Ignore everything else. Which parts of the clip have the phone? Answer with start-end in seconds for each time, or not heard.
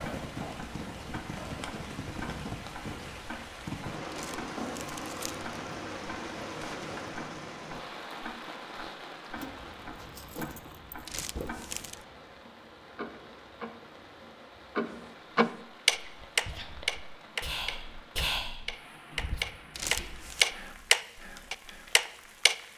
not heard.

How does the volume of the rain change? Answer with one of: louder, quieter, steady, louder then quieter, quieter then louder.
quieter.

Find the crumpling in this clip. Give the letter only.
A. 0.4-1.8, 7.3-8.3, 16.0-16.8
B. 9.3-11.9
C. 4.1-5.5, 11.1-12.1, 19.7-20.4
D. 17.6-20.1
C.